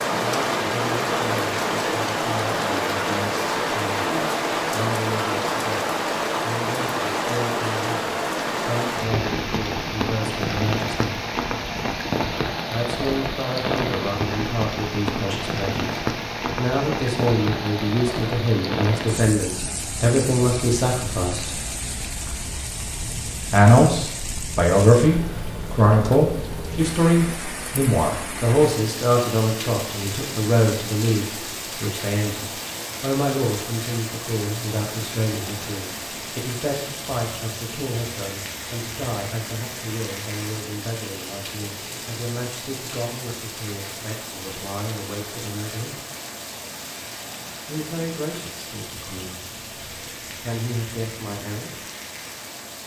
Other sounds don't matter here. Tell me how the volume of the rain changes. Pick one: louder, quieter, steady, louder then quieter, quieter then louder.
quieter.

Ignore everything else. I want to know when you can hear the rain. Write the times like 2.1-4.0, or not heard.
0.0-52.8.